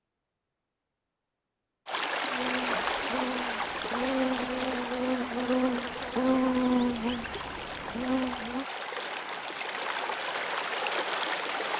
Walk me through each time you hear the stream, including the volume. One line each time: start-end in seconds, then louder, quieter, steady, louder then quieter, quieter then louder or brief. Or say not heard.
1.9-11.7 quieter then louder.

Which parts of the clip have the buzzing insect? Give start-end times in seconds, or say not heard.
2.3-8.7.